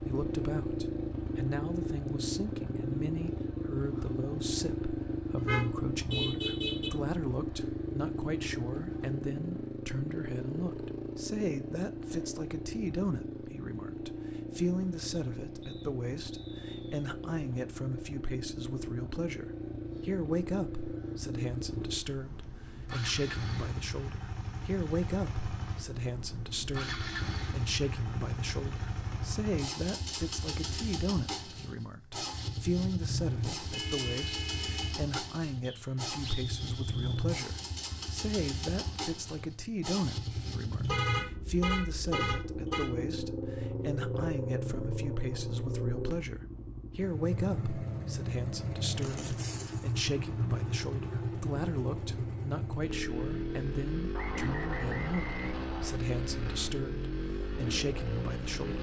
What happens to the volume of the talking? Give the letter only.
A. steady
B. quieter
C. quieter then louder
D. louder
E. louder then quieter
A.